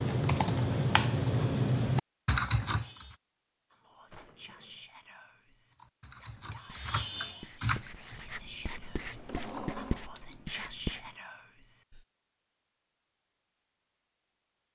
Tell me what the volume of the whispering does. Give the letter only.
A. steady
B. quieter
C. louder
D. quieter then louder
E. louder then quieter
C.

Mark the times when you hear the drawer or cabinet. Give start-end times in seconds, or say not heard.
4.1-4.9, 9.1-10.2.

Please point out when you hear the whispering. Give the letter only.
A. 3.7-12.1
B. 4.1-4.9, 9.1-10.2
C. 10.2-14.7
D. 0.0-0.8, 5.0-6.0
A.